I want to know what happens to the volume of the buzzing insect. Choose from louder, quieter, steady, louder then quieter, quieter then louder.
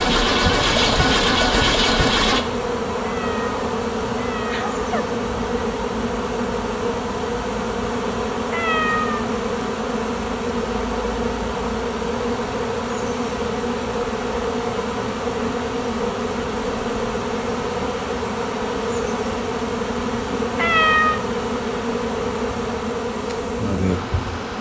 steady.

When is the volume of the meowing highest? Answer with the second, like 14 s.
21 s.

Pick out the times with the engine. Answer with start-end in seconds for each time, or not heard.
0.0-2.5.